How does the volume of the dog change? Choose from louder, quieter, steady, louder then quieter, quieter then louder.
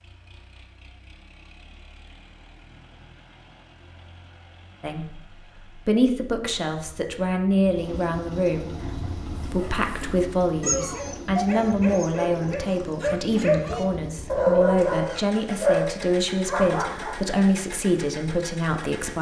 louder.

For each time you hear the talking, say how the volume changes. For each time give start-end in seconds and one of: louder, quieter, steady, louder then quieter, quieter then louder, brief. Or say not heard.
4.8-19.1 steady.